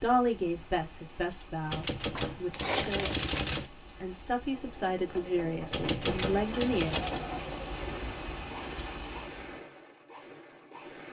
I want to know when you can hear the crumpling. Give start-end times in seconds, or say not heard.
2.1-3.5.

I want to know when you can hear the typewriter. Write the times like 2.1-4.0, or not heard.
1.7-3.7, 5.7-7.2.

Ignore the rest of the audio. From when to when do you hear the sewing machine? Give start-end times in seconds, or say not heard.
4.4-11.0.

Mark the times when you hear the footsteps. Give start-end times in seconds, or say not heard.
not heard.